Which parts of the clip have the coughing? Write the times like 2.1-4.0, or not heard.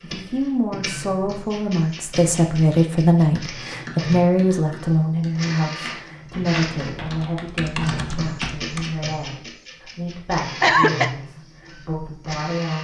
10.6-11.2.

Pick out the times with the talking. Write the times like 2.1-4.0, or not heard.
0.0-12.7.